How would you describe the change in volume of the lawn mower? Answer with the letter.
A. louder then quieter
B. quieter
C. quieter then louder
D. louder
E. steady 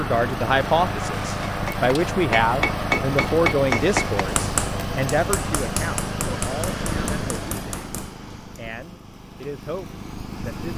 B.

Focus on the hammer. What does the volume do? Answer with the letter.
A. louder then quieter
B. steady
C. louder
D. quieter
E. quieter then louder
D.